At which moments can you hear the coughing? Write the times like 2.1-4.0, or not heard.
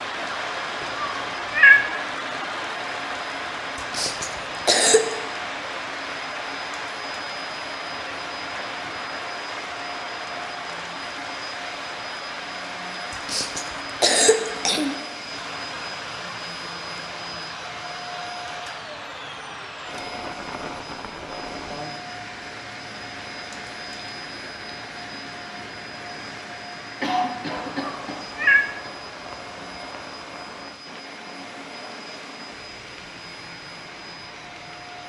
3.8-5.0, 13.1-14.9, 27.0-28.9.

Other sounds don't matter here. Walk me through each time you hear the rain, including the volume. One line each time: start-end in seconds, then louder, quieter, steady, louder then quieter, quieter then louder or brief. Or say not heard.
0.0-35.0 quieter.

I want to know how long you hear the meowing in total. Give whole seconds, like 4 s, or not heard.
2 s.